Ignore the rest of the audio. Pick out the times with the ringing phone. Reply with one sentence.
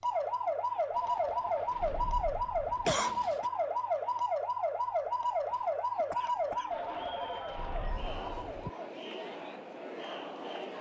The ringing phone can be heard from 0.9 to 3.0 s and from 6.7 to 8.7 s.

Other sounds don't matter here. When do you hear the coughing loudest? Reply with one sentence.
The loudest moment of the coughing is at 3 seconds.